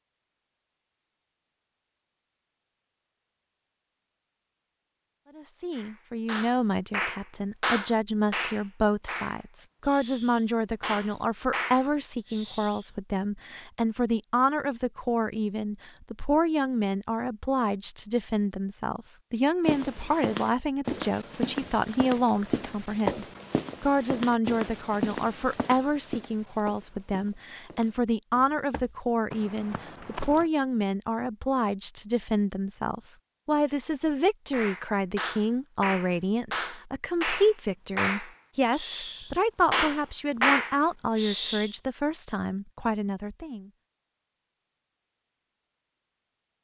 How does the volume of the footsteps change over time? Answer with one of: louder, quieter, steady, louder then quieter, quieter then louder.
quieter.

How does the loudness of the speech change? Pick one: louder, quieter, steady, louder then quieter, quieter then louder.
steady.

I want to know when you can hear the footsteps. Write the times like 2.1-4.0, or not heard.
19.6-30.4.